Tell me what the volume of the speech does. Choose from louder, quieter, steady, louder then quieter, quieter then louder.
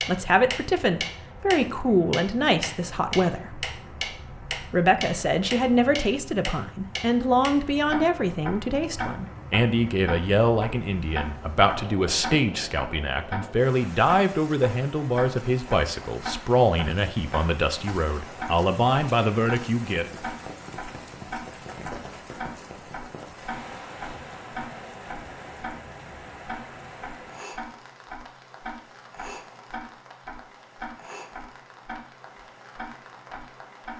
steady.